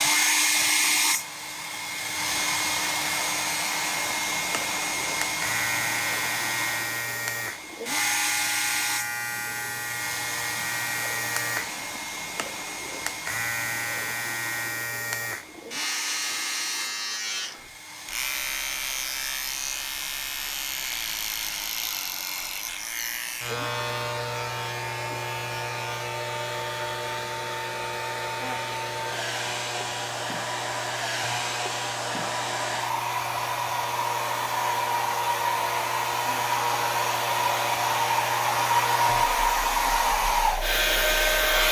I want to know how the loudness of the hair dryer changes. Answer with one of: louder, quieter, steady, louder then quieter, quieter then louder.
quieter then louder.